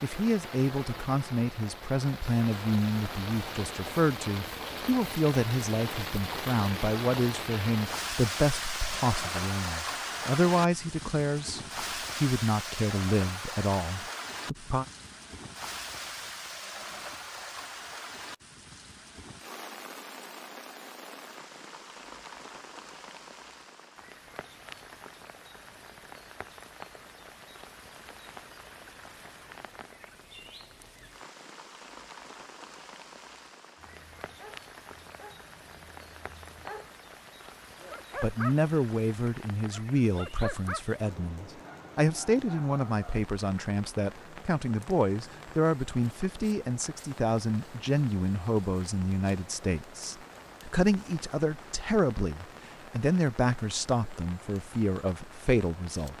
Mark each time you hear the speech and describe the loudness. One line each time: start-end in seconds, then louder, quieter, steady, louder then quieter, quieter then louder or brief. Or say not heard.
0.0-14.8 steady
38.2-56.1 steady.